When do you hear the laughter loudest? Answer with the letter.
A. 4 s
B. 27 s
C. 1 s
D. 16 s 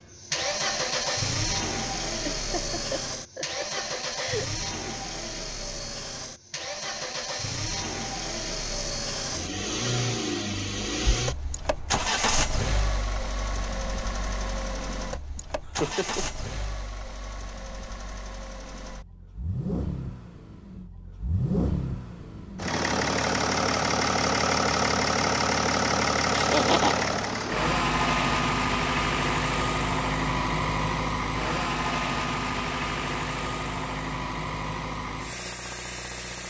B.